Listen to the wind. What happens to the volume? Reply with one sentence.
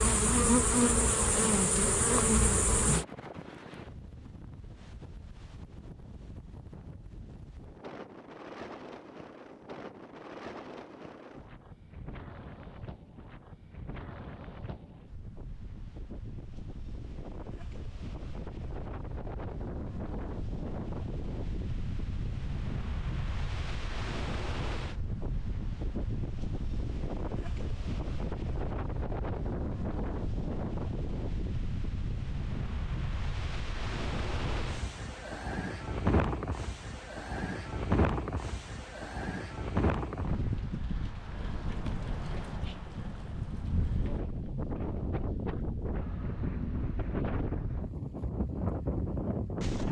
The loudness of the wind goes up.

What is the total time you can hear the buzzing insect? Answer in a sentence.
You can hear the buzzing insect for 3 seconds altogether.